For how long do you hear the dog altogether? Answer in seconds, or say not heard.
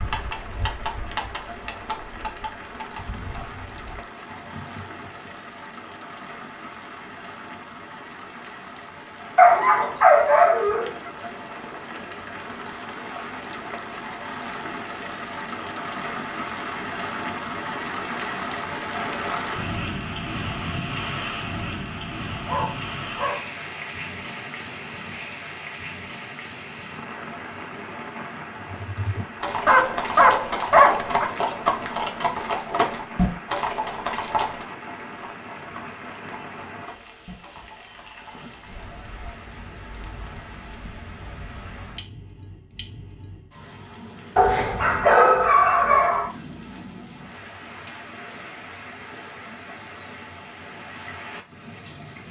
6 s.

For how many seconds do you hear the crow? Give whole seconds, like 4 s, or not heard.
not heard.